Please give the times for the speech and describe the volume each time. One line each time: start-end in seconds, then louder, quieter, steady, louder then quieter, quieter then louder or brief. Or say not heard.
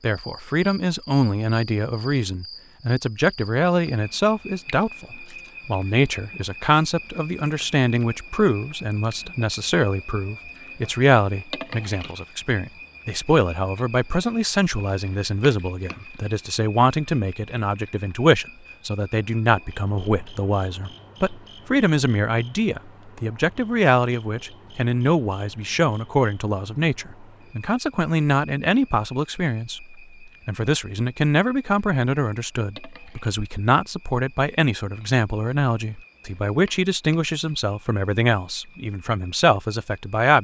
0.0-40.3 steady.